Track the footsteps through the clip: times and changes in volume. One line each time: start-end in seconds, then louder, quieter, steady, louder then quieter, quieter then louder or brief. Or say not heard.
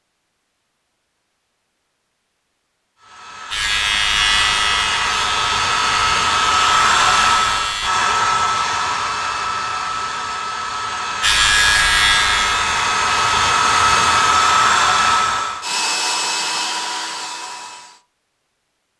not heard.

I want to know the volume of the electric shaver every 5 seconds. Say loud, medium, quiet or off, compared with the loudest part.
loud, medium, loud, off.